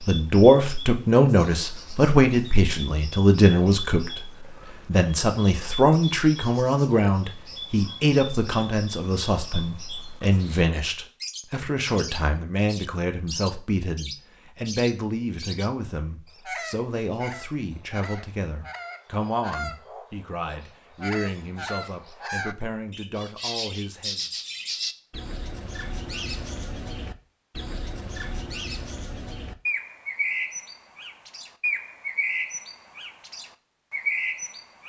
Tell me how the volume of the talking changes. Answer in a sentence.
The loudness of the talking goes down.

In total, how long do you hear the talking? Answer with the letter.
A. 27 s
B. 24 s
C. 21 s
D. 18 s
B.